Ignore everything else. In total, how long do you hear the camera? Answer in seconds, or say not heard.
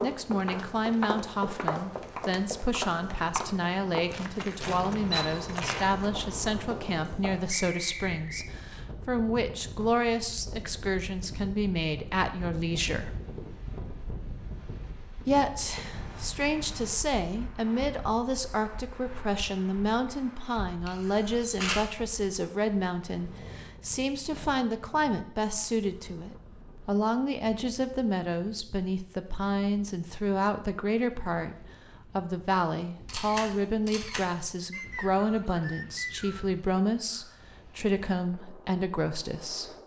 4 s.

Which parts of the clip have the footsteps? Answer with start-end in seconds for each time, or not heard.
0.0-7.5.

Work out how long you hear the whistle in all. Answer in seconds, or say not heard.
3 s.